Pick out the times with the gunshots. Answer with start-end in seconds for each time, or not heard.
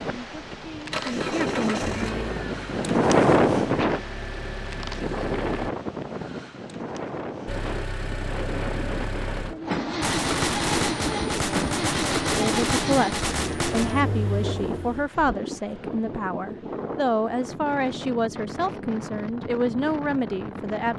10.0-14.1.